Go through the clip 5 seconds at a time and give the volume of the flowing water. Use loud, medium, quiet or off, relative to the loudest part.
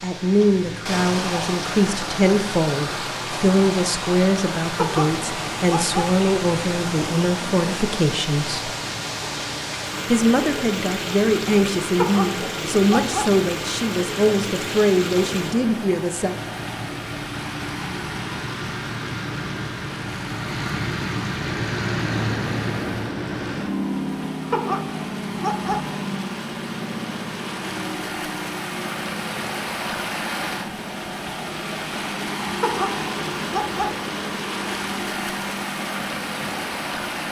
loud, loud, loud, medium, medium, loud, loud, loud.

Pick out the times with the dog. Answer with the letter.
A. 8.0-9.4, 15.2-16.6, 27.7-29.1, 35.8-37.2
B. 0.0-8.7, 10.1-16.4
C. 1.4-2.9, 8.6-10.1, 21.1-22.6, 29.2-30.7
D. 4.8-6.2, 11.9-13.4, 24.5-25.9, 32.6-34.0
D.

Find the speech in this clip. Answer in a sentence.
You can hear the speech from 0.0 to 8.7 s and from 10.1 to 16.4 s.